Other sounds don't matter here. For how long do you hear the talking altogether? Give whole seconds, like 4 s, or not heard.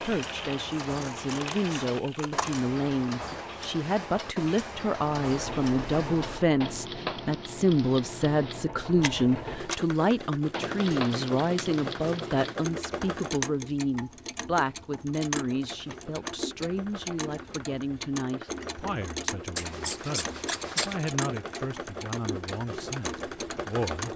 24 s.